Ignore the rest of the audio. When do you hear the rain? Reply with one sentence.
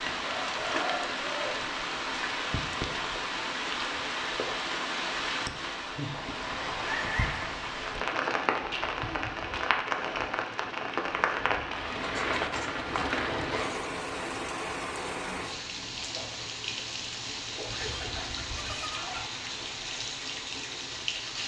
The rain can be heard from 0.0 to 21.4 s.